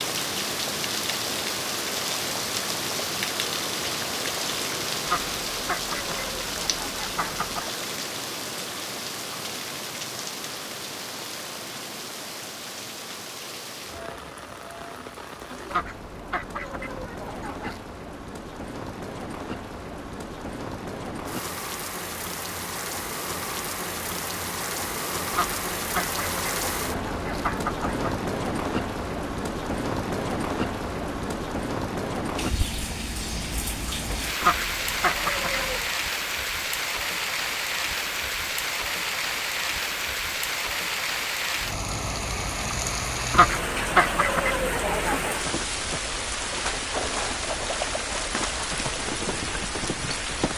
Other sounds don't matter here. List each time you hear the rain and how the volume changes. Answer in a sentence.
You can hear the rain from 0.0 to 50.5 s, getting quieter then louder.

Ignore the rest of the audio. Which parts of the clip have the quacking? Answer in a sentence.
The quacking can be heard from 5.0 to 7.7 s, from 15.7 to 17.8 s, from 25.3 to 28.1 s, from 34.4 to 35.9 s and from 43.3 to 45.4 s.